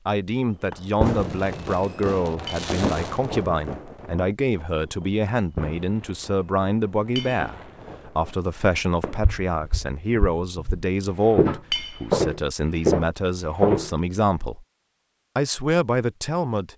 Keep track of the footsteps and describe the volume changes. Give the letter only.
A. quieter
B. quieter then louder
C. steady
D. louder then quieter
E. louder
B.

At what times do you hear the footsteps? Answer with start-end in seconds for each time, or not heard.
9.2-14.0.